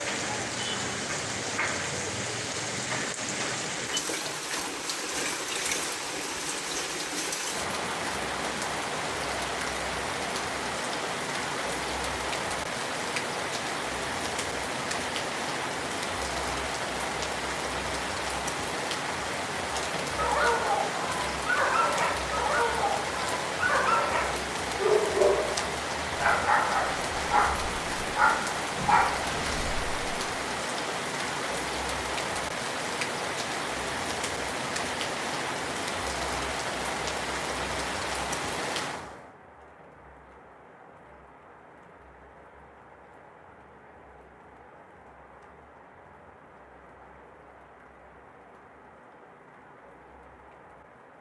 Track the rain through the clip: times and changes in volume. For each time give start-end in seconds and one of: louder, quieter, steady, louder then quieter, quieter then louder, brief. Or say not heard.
0.0-51.1 quieter.